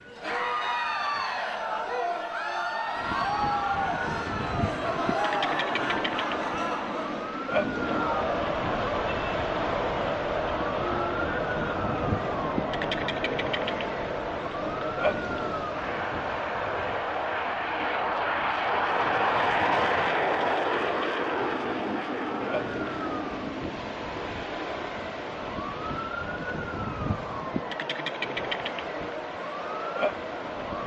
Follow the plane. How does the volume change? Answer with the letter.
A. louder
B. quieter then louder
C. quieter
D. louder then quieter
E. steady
A.